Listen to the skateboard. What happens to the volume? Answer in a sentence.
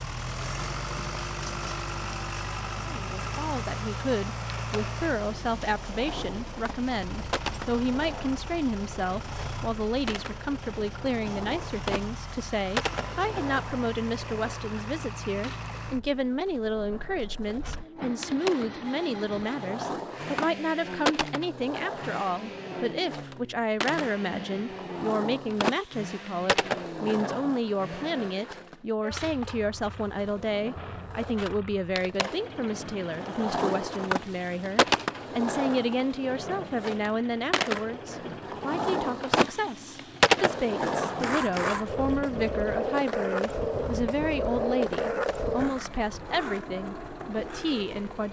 The volume of the skateboard goes up.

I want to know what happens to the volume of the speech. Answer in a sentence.
The volume of the speech stays about the same.